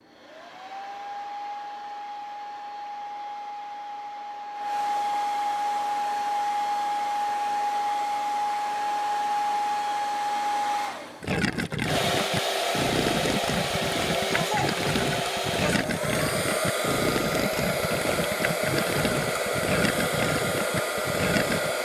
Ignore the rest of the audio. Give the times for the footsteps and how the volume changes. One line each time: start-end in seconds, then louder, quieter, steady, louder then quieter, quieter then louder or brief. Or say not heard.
not heard.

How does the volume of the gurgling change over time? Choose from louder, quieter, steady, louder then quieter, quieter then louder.
steady.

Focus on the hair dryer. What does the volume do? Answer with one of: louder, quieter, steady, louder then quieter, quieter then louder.
louder.